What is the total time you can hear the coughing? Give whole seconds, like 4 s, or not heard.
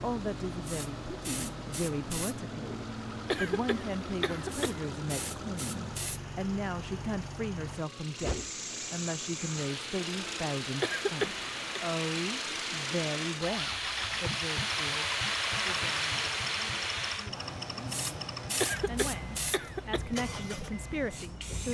4 s.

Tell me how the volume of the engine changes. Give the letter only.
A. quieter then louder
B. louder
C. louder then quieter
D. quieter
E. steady
E.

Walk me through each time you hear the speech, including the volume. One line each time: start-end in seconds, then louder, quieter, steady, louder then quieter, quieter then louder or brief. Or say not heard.
0.0-21.6 steady.